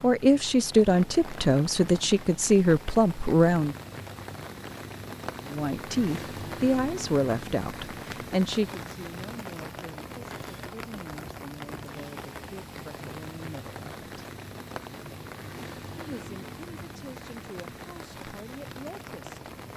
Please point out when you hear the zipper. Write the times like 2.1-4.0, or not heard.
not heard.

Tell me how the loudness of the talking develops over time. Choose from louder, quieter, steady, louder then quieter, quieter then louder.
quieter.